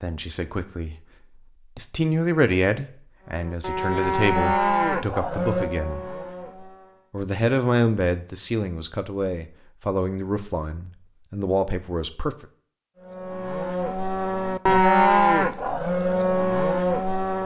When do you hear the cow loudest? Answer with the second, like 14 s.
15 s.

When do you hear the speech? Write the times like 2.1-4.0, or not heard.
0.0-0.9, 1.8-6.0, 7.1-12.4.